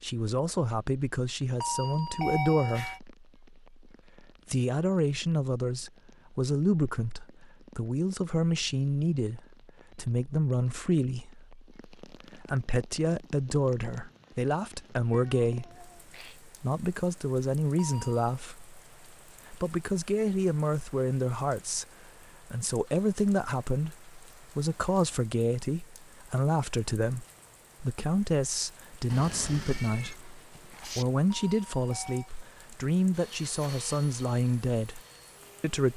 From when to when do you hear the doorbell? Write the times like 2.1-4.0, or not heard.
1.6-3.0, 17.8-18.4, 31.3-32.3.